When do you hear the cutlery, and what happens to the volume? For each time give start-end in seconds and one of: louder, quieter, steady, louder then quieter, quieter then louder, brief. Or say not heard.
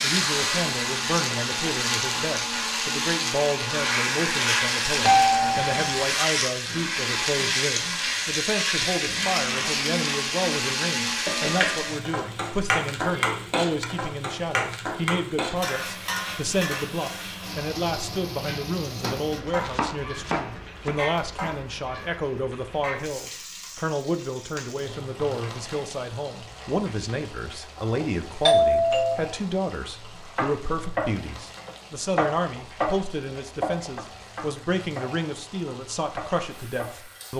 not heard.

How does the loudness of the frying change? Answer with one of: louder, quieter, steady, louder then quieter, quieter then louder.
quieter.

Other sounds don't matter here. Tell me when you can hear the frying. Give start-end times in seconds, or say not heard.
0.0-37.3.